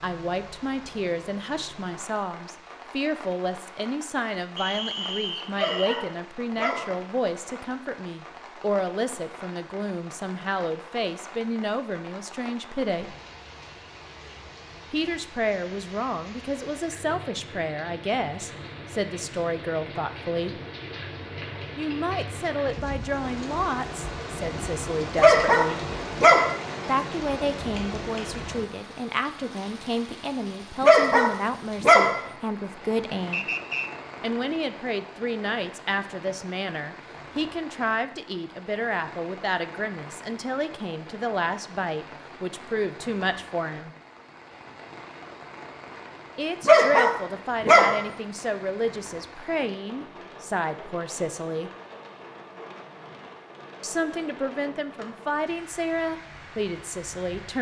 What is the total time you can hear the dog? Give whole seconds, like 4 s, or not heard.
6 s.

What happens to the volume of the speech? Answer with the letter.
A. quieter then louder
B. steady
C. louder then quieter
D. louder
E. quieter
B.